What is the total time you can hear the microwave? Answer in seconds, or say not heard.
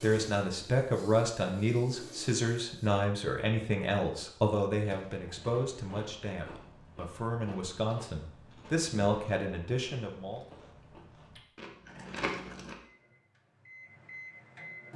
2 s.